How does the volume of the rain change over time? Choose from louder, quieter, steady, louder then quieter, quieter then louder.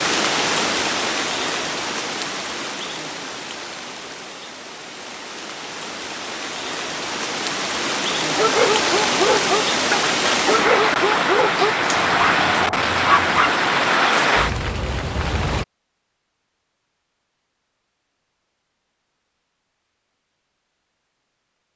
quieter then louder.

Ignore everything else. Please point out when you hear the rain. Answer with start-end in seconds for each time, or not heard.
0.0-15.7.